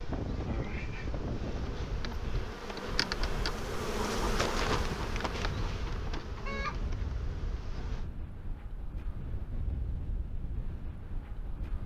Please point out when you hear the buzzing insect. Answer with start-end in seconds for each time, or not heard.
0.0-8.1.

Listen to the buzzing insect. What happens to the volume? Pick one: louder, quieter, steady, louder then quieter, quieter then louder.
louder then quieter.